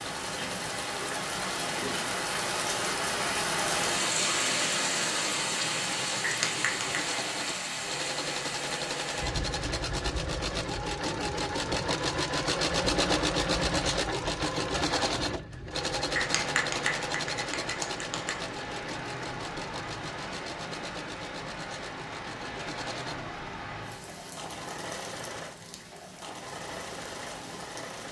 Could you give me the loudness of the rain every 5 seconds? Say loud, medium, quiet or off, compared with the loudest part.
loud, loud, quiet, medium, medium, quiet.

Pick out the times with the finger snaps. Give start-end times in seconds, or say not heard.
6.2-6.9, 16.1-18.4.